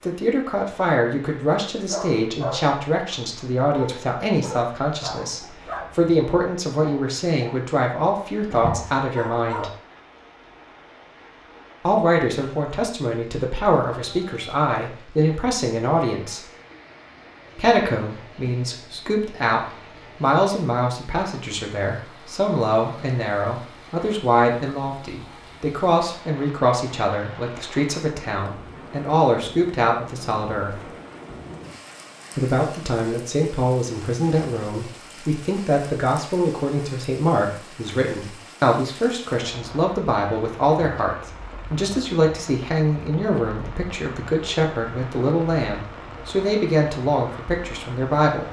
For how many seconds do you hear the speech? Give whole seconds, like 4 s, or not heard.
44 s.